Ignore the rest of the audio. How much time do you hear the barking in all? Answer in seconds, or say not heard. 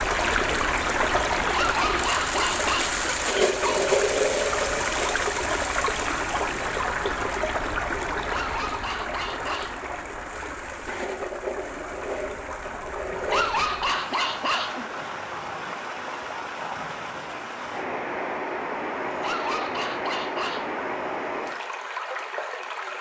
8 s.